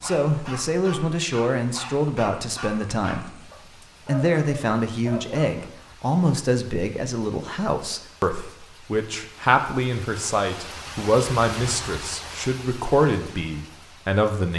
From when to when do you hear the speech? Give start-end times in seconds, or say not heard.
0.0-3.4, 4.0-14.5.